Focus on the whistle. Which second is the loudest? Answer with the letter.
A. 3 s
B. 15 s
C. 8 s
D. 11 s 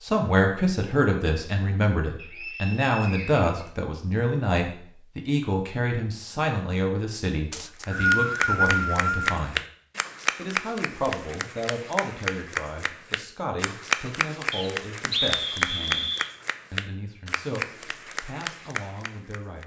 C.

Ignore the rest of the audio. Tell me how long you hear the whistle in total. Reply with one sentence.
The whistle can be heard for 6 seconds in total.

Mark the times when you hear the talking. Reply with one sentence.
The talking can be heard from 0.0 to 9.6 s, from 10.3 to 16.1 s and from 16.7 to 19.6 s.